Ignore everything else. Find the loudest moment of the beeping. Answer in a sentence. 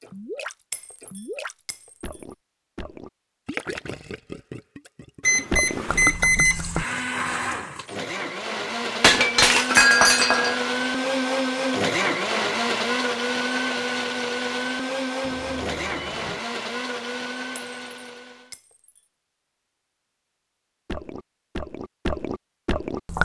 The volume of the beeping peaks at 6 seconds.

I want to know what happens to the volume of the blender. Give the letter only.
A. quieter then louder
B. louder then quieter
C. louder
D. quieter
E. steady
B.